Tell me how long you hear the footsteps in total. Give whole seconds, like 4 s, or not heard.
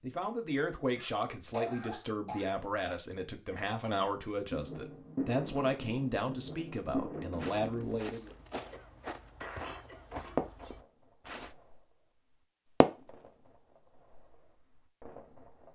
4 s.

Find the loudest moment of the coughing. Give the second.
2 s.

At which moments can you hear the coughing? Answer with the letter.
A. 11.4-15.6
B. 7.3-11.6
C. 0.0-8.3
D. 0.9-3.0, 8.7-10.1
D.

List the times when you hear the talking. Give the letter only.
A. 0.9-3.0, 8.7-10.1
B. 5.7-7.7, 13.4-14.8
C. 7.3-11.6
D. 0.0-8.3
D.